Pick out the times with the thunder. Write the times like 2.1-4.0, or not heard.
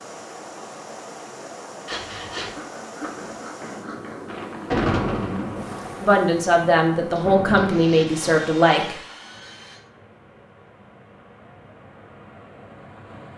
4.2-8.5.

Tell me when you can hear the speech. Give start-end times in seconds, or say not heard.
6.0-8.9.